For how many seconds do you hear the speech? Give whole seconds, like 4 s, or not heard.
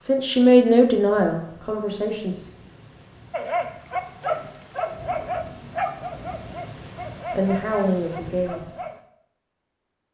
4 s.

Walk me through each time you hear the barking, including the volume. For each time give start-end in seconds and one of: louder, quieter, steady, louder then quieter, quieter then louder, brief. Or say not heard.
3.3-9.0 quieter.